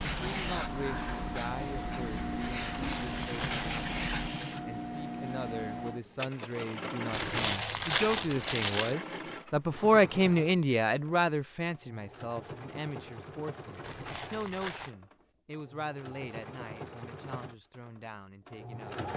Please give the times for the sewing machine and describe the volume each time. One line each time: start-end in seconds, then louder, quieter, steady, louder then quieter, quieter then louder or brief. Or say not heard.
0.0-19.1 quieter.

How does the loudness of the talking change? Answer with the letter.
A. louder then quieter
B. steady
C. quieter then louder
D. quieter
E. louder
A.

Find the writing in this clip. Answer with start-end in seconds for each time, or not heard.
0.0-4.3.